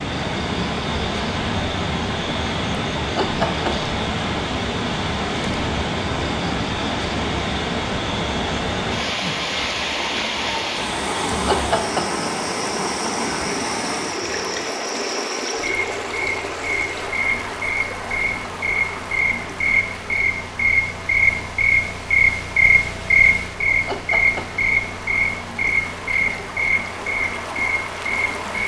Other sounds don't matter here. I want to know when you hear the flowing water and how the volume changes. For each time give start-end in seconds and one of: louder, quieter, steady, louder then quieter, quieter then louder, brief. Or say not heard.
0.0-28.6 quieter.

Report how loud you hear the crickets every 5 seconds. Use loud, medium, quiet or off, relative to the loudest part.
quiet, quiet, quiet, medium, loud, medium.